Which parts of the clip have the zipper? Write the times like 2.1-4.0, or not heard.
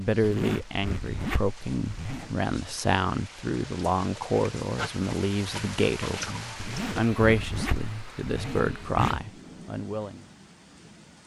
0.2-2.4, 6.6-9.2.